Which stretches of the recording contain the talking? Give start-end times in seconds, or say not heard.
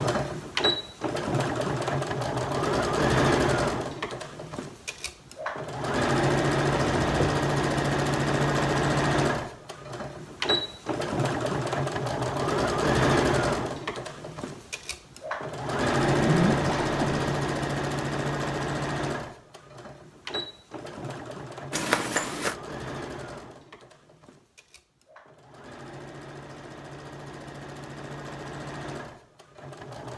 not heard.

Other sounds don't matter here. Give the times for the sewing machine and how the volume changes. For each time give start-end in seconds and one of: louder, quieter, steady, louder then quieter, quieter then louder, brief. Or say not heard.
0.0-30.1 quieter.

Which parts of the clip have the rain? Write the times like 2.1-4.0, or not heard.
not heard.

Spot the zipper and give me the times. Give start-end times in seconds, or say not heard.
6.7-7.4, 16.1-17.4, 21.7-22.6.